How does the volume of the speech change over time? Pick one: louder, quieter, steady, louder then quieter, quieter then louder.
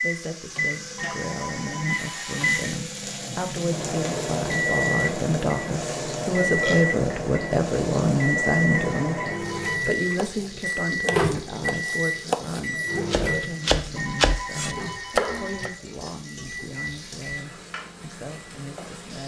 louder then quieter.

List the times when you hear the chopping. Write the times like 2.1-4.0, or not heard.
10.1-15.7.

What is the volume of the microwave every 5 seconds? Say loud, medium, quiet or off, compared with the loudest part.
loud, loud, loud, quiet.